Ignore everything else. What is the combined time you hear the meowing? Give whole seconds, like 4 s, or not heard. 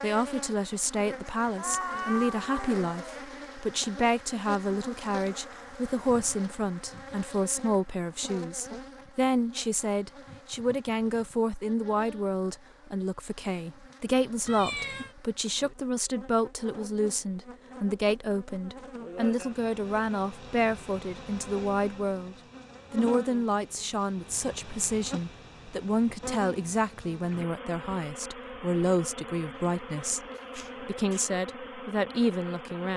4 s.